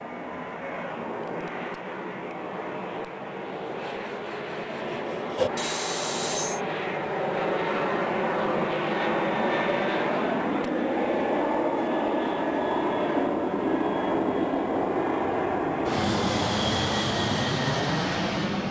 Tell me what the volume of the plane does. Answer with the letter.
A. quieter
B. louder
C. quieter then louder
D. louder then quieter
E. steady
B.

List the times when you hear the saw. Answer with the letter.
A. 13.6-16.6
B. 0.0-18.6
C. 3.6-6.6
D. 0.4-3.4
C.